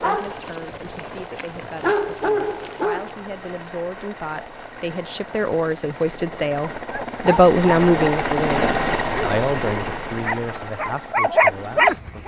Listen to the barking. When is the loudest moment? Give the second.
11 s.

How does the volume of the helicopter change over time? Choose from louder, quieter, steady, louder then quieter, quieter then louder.
louder then quieter.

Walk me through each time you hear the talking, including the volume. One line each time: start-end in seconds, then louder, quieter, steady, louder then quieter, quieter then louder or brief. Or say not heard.
0.0-12.2 louder then quieter.